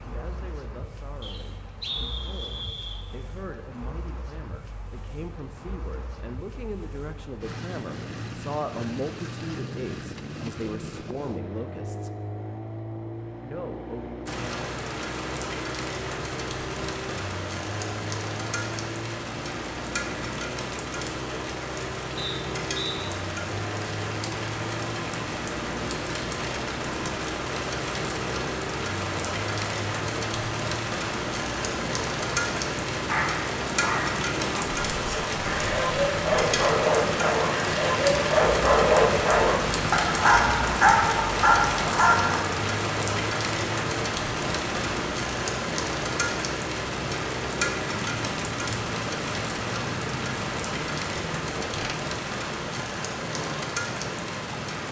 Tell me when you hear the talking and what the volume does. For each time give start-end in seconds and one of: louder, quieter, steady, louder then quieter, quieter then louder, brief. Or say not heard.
0.0-12.1 louder
13.4-14.2 brief.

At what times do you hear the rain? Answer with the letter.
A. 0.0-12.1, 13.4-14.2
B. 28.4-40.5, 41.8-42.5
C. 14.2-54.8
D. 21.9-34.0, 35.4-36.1
C.